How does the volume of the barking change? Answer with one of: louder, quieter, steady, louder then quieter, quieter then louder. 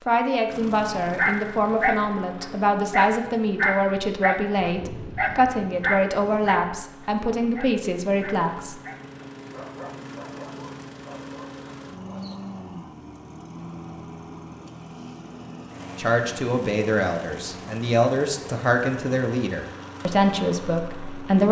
quieter.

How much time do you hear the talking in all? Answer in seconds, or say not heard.
14 s.